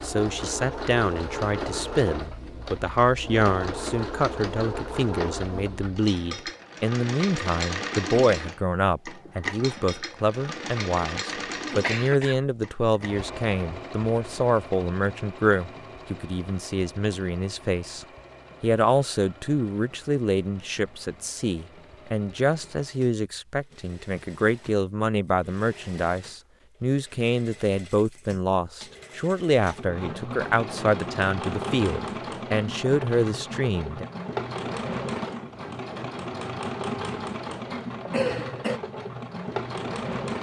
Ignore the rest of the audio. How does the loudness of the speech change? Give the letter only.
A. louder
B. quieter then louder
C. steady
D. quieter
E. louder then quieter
C.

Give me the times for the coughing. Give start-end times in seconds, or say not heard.
11.8-12.4, 38.1-38.8.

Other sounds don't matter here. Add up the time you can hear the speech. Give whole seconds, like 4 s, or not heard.
34 s.